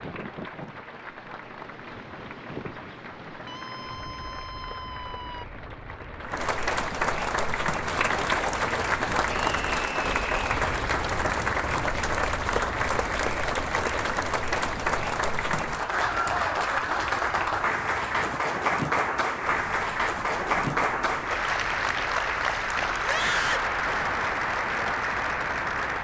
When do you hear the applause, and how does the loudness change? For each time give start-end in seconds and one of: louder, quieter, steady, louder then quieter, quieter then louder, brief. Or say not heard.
0.0-25.9 louder.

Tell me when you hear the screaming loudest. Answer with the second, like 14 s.
23 s.